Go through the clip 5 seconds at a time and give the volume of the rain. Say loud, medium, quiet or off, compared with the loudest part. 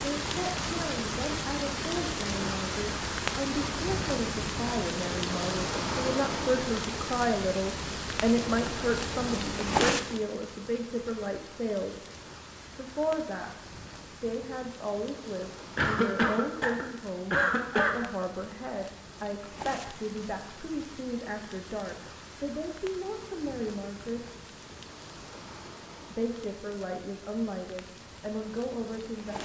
loud, loud, quiet, quiet, quiet, quiet.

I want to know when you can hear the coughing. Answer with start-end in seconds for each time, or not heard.
15.8-18.0.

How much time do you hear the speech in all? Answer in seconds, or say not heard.
27 s.